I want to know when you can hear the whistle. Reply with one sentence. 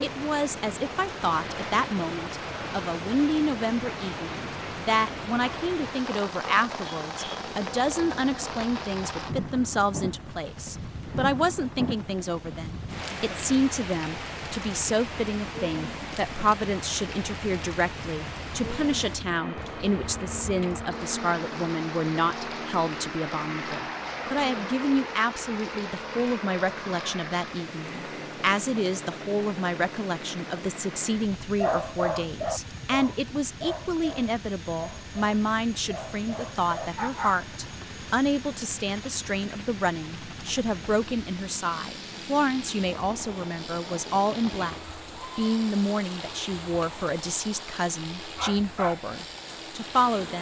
The whistle can't be heard in this clip.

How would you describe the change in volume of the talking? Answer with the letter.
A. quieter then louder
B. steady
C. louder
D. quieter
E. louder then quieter
B.